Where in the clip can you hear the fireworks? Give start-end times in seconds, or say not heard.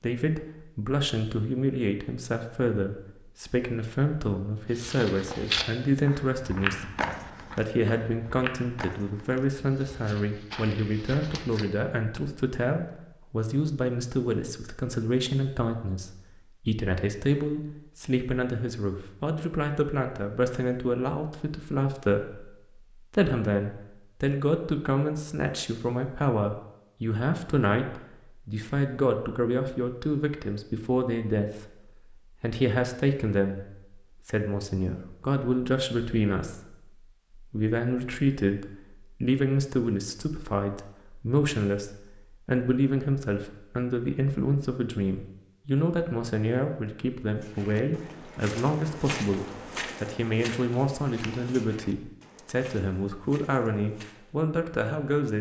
not heard.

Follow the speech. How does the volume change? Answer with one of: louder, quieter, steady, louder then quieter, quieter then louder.
steady.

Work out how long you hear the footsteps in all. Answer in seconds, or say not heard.
14 s.